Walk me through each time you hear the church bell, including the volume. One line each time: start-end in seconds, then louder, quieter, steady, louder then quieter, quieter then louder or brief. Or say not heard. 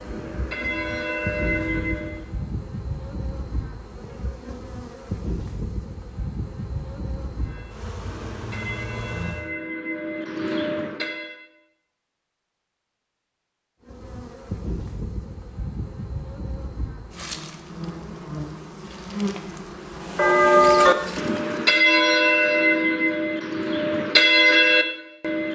0.0-2.2 brief
7.4-11.4 louder
20.1-25.5 quieter then louder.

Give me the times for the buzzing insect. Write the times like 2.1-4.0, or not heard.
0.0-9.5, 13.8-21.8.